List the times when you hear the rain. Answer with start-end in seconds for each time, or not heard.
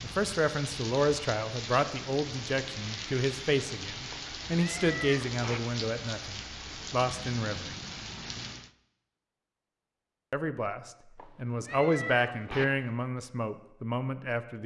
0.0-8.7.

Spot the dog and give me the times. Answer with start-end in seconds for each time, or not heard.
not heard.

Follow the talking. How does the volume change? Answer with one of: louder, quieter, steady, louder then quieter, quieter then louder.
steady.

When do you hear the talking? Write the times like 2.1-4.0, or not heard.
0.0-7.8, 10.3-14.6.